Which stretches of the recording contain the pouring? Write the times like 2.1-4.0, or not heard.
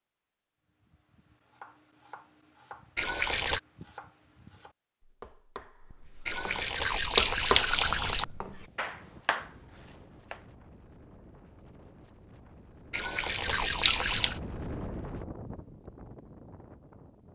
3.0-3.6, 6.2-8.2, 12.9-14.4.